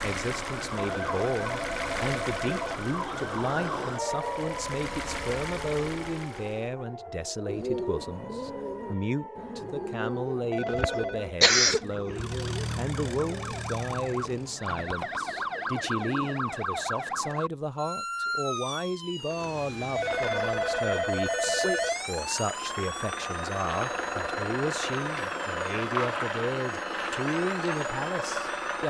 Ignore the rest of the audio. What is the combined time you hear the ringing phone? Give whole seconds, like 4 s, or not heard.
5 s.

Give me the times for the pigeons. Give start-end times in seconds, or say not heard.
7.5-17.4.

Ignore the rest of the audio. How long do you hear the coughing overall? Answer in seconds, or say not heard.
2 s.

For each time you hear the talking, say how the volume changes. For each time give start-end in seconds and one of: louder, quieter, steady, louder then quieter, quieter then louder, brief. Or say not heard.
0.0-28.8 steady.